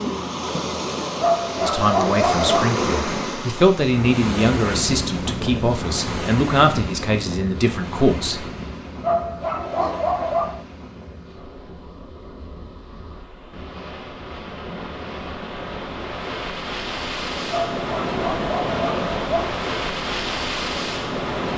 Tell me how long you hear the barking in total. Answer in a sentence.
You can hear the barking for 5 seconds altogether.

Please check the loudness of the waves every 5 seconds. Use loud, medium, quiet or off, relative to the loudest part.
loud, medium, quiet, loud, loud.